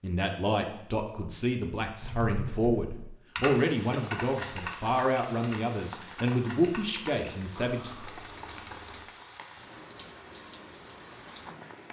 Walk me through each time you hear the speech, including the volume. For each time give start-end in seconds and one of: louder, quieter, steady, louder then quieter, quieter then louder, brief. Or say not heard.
0.0-8.0 steady.